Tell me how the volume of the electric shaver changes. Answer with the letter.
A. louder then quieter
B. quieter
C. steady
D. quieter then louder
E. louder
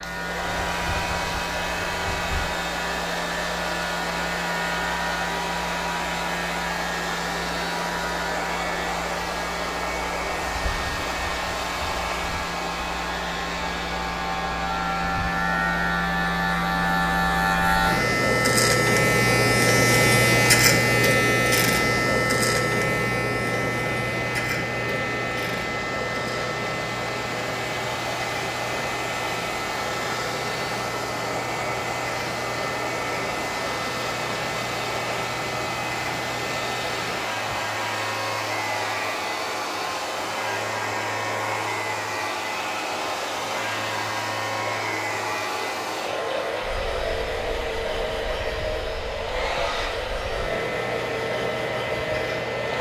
A.